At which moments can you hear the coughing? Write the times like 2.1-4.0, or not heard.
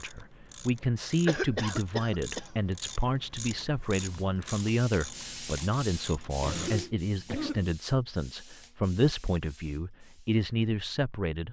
1.2-2.5, 6.4-7.7.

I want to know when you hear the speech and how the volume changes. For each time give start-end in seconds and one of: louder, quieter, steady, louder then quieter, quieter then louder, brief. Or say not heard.
0.0-11.4 steady.